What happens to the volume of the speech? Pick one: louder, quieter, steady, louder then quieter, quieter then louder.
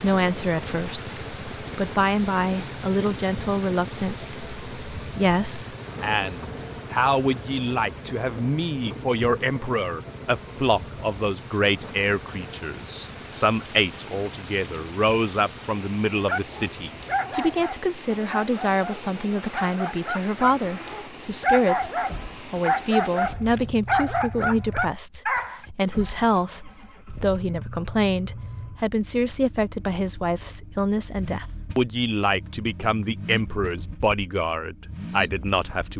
steady.